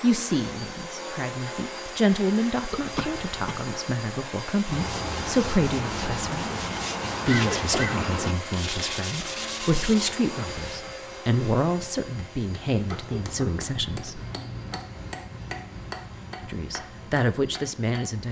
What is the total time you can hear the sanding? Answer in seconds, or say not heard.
6 s.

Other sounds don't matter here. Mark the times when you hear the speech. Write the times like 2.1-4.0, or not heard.
0.0-6.5, 7.2-14.2, 16.4-18.2.